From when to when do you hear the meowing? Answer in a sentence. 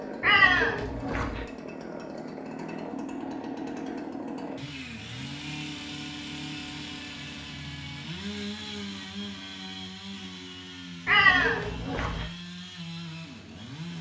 The meowing can be heard from 0.2 to 1.4 s and from 11.1 to 12.2 s.